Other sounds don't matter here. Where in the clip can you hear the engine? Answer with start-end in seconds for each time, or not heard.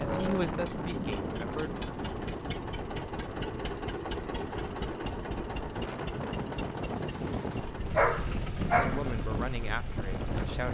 0.0-10.6.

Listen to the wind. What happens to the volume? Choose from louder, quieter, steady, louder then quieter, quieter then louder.
quieter then louder.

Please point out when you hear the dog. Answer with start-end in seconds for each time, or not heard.
8.0-9.1.